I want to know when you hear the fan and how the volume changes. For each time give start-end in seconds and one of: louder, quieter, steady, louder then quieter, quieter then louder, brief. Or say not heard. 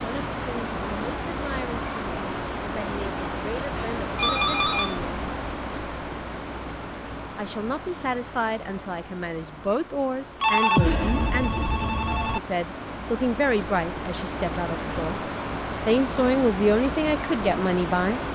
0.0-18.3 quieter then louder.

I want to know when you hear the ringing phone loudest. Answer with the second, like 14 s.
11 s.